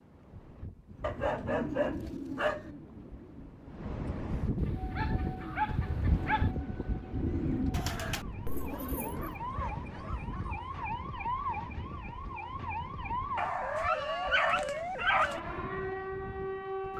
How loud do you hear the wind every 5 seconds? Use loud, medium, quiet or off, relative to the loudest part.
loud, loud, medium, medium.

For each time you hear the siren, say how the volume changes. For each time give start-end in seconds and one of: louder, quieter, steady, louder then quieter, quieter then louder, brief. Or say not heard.
4.7-16.9 louder.